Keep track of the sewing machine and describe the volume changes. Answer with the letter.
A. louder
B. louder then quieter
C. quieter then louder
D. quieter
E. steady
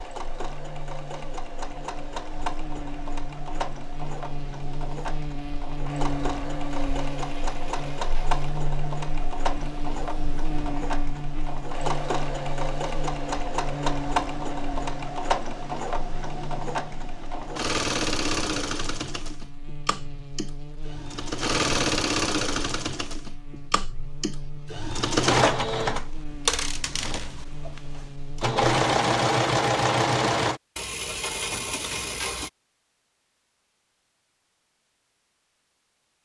A.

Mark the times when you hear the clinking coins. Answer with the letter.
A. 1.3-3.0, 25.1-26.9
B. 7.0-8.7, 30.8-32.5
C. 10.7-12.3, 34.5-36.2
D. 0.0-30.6
B.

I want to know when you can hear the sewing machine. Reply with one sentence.
You can hear the sewing machine from 0.0 to 30.6 s.